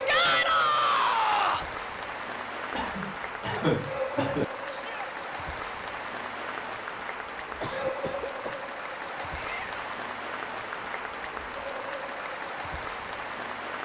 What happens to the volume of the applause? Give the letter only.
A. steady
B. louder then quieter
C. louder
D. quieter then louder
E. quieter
A.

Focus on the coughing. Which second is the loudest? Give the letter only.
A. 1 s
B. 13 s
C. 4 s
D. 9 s
C.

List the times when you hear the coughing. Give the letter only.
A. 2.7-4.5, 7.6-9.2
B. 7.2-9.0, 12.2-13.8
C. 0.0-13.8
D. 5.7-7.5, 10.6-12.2
A.